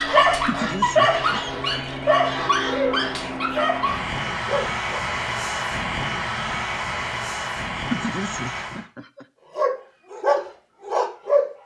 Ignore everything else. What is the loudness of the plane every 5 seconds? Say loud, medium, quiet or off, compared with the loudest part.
loud, loud, off.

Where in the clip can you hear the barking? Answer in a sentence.
You can hear the barking from 0.0 to 5.0 s and from 9.6 to 11.5 s.